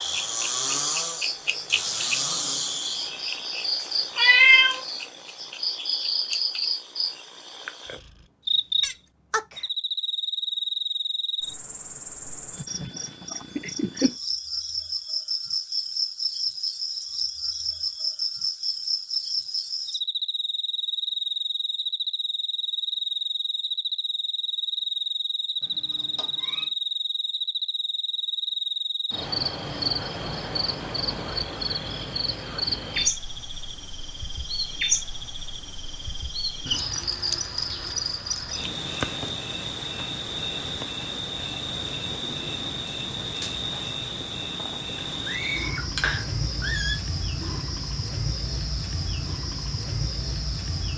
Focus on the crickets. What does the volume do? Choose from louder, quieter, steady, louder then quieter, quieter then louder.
steady.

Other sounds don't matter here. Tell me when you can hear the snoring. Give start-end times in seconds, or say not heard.
0.0-3.2.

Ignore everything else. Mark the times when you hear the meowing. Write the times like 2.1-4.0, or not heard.
4.2-4.8, 25.6-26.7, 45.2-47.0.